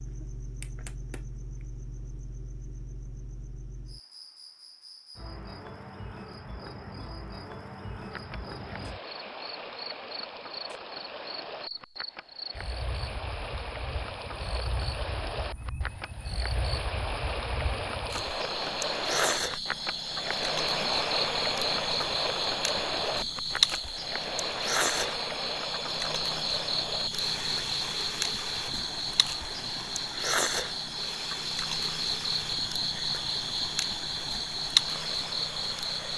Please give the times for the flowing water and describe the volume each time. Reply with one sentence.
You can hear the flowing water from 8.0 to 36.1 s, getting louder then quieter.